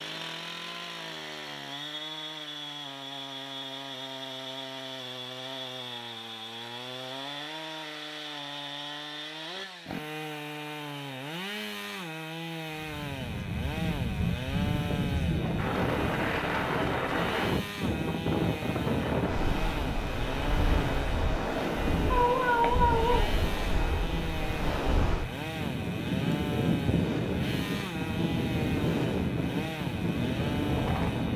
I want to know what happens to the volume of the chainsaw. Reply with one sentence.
The loudness of the chainsaw stays about the same.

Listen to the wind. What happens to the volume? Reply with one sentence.
The loudness of the wind stays about the same.